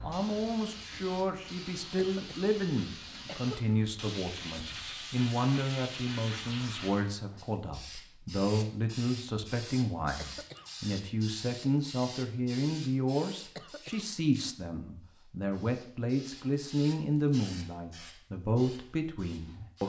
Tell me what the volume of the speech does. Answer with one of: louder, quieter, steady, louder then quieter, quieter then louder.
steady.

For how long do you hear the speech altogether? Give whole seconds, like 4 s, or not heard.
20 s.